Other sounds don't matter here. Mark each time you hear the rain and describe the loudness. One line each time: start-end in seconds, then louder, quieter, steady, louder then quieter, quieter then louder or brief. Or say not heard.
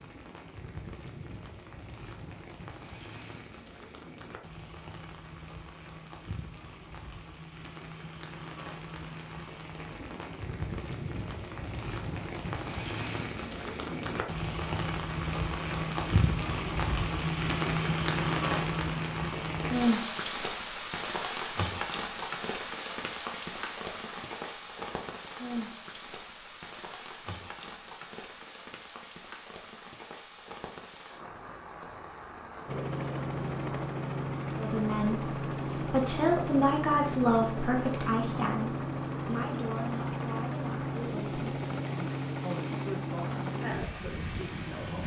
0.0-45.0 louder then quieter.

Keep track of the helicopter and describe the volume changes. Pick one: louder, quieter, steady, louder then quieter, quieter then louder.
steady.